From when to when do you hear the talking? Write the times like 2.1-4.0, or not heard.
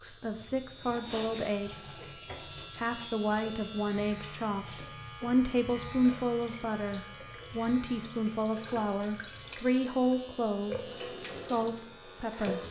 0.0-1.9, 2.8-12.6.